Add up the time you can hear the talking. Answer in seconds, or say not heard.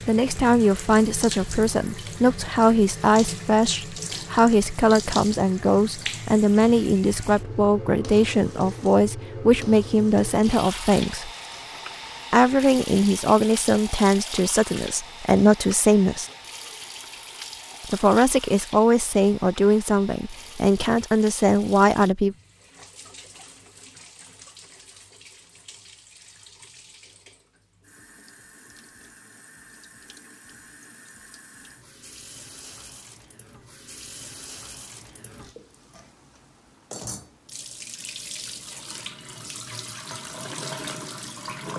20 s.